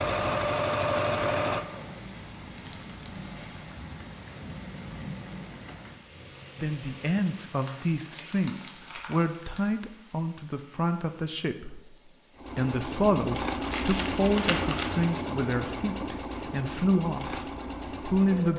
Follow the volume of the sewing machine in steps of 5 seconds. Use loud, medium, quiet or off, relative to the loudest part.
loud, quiet, loud, medium.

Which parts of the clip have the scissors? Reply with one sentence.
The scissors can't be heard in this clip.